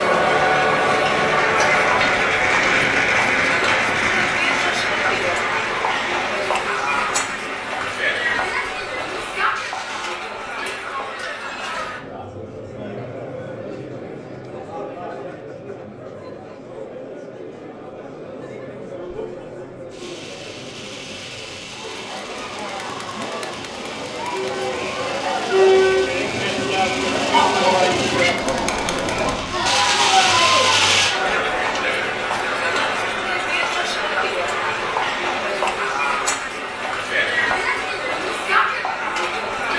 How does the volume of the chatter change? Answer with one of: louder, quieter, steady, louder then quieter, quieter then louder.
quieter then louder.